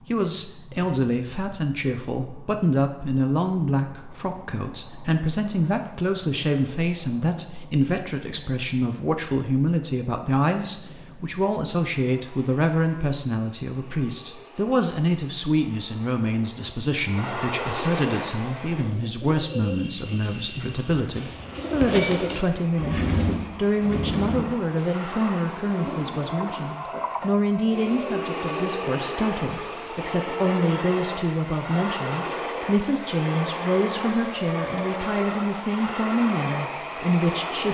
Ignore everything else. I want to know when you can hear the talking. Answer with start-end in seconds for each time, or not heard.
0.1-37.6.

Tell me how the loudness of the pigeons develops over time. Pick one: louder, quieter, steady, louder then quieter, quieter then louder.
louder then quieter.